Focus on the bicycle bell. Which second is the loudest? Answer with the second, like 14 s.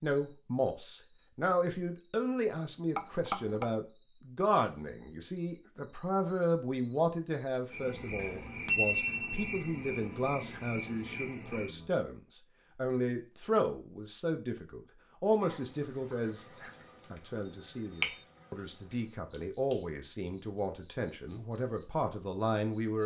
9 s.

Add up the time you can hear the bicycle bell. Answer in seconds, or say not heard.
3 s.